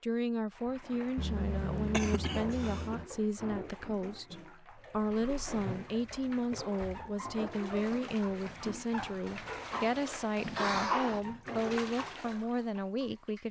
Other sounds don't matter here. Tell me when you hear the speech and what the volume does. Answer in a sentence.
You can hear the speech from 0.0 to 13.4 s, at a steady volume.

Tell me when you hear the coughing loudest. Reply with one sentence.
The volume of the coughing peaks at 11 seconds.